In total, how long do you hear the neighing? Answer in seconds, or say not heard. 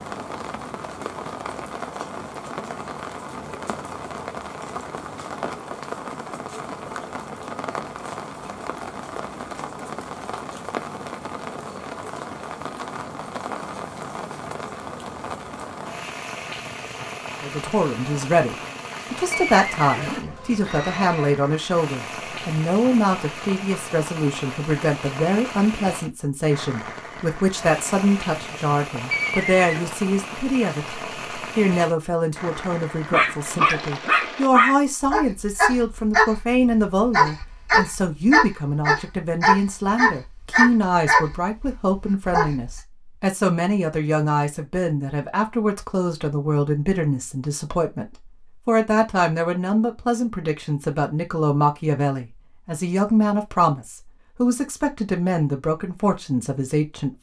3 s.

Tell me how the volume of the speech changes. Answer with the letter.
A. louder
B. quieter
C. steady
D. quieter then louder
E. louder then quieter
C.